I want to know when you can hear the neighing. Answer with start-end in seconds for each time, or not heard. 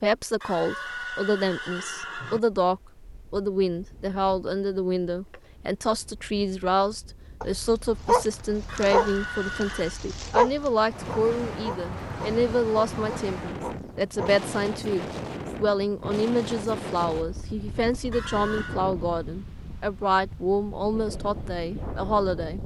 0.4-2.4, 8.7-10.0, 18.1-18.8.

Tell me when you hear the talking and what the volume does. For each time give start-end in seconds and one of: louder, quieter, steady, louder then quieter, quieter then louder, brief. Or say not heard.
0.0-22.6 steady.